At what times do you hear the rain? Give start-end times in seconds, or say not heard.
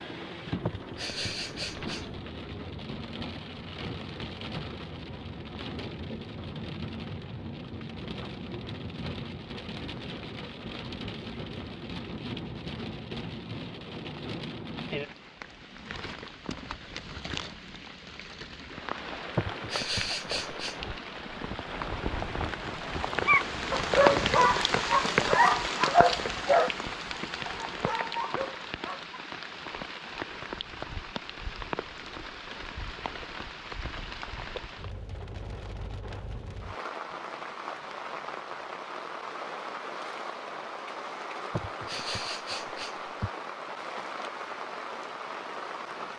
0.0-46.1.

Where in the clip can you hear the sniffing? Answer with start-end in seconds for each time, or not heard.
0.6-2.0, 19.4-20.9, 41.5-43.3.